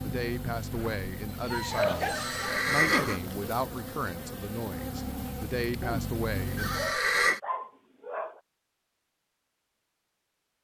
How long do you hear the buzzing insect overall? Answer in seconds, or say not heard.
7 s.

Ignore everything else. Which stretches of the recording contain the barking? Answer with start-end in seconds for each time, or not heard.
0.7-2.6, 6.8-8.4.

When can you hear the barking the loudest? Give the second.
2 s.